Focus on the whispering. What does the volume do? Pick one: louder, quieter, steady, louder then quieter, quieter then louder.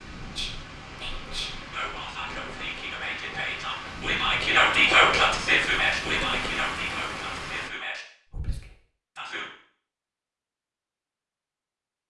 louder then quieter.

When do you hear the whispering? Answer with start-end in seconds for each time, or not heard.
0.3-9.5.